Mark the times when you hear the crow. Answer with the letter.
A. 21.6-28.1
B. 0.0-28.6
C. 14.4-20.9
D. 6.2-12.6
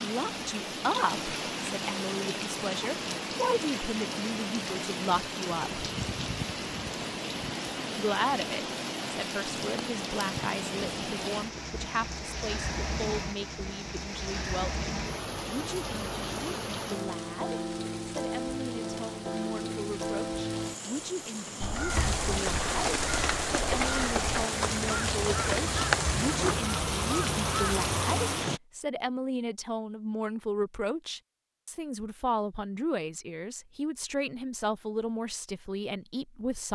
A.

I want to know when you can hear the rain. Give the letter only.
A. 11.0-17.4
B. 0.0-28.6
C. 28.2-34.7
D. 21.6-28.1
B.